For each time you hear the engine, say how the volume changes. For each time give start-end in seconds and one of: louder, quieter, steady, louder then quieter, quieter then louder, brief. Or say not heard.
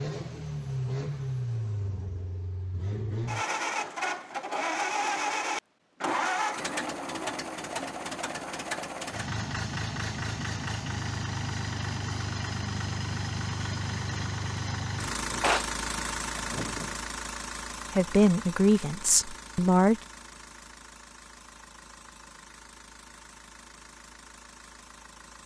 0.0-25.4 quieter.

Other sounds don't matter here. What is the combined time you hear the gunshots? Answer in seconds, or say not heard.
2 s.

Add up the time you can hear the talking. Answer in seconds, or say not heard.
2 s.